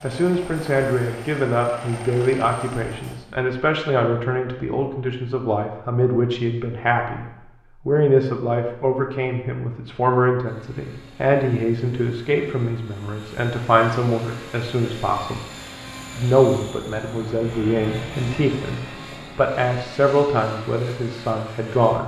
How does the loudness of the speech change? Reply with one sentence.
The volume of the speech stays about the same.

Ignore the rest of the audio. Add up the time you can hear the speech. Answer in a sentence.
You can hear the speech for 21 seconds altogether.